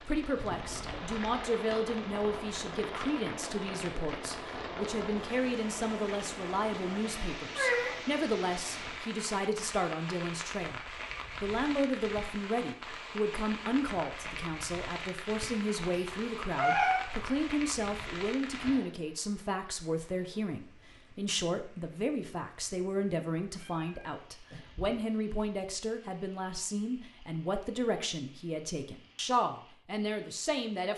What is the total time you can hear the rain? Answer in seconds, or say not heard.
31 s.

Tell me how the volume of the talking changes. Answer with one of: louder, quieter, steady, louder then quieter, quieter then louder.
steady.